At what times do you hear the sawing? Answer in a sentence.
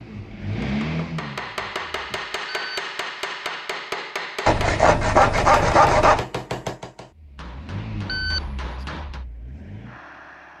You can hear the sawing from 4.5 to 6.2 s.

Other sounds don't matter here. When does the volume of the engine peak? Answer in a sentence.
The volume of the engine peaks at 1 second.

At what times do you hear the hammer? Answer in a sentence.
The hammer can be heard from 0.6 to 9.2 s.